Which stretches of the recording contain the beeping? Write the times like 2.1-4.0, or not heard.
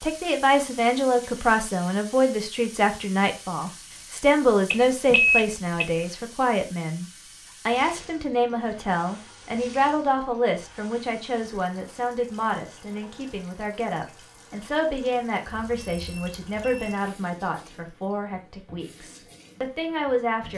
4.7-6.0, 15.4-16.9.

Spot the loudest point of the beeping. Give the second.
5 s.